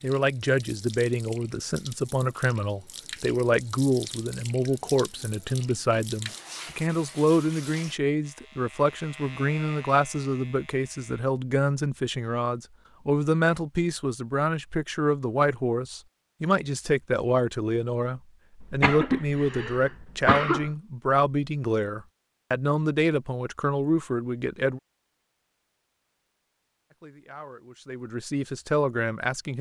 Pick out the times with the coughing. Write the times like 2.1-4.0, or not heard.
18.6-20.7.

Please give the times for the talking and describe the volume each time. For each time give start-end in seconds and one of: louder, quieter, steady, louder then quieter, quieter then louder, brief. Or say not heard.
0.0-24.8 steady
26.9-29.5 brief.